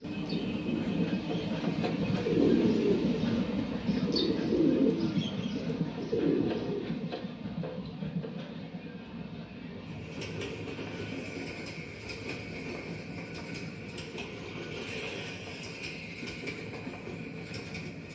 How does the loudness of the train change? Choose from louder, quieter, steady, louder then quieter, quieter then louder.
quieter.